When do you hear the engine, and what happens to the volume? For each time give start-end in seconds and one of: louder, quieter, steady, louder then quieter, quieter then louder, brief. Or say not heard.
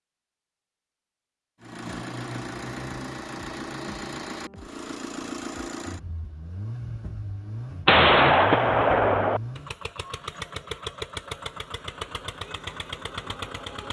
1.6-13.8 steady.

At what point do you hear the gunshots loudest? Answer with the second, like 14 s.
8 s.